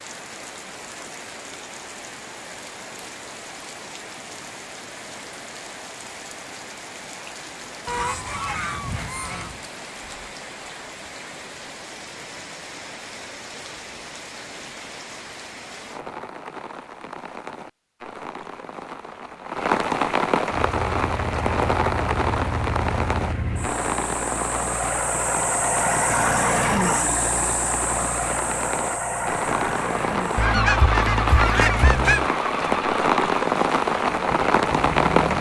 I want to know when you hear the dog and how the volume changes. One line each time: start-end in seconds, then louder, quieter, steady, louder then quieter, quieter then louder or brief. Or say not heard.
not heard.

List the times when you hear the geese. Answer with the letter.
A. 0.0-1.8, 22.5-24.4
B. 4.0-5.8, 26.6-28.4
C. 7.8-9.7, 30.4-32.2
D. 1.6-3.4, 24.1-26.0
C.